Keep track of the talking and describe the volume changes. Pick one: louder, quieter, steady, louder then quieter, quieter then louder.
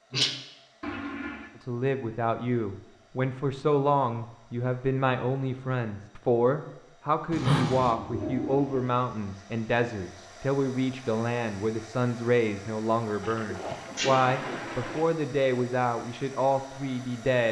steady.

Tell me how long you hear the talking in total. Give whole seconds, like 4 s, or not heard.
16 s.